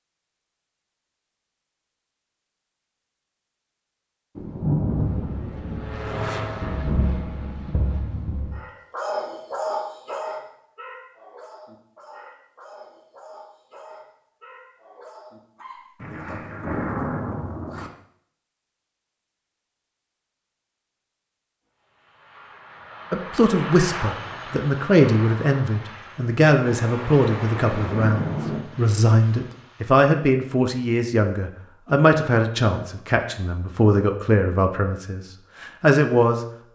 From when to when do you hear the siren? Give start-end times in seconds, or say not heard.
not heard.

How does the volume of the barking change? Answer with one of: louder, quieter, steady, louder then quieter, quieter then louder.
quieter.